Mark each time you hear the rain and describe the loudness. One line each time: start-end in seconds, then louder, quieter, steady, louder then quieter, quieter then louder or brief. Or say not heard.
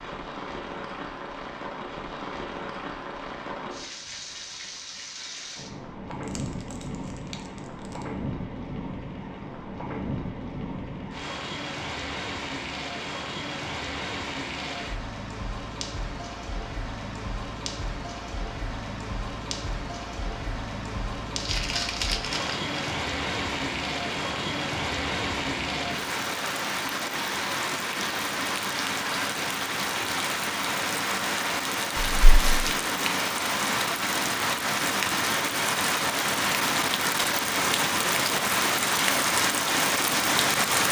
0.0-40.8 louder.